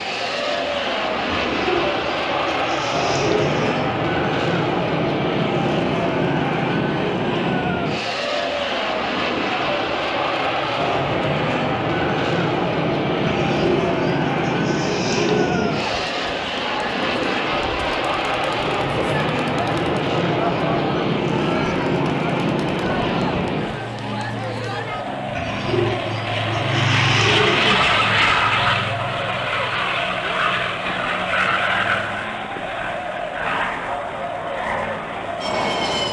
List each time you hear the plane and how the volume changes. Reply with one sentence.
You can hear the plane from 0.0 to 36.0 s, at a steady volume.